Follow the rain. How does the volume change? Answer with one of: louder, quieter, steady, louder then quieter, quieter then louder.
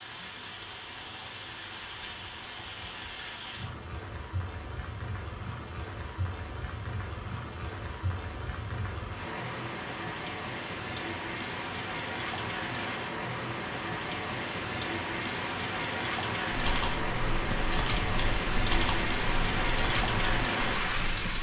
louder.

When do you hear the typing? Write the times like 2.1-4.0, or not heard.
16.5-21.3.